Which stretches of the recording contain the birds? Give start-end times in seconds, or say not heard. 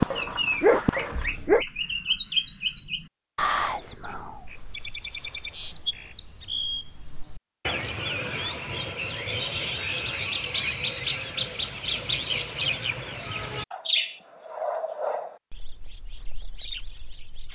0.0-17.5.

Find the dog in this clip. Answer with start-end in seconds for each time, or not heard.
0.0-1.6.